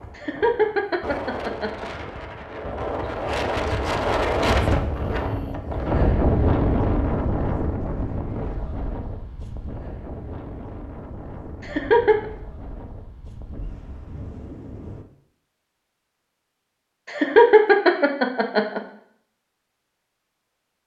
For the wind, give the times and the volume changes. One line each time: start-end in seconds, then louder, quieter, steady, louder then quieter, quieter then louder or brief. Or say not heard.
0.0-15.1 louder then quieter.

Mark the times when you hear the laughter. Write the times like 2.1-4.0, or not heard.
0.1-1.9, 11.6-12.2, 17.1-18.8.